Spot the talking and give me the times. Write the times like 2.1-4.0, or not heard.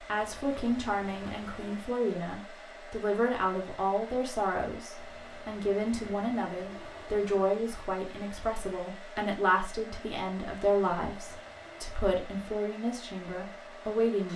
0.1-14.3.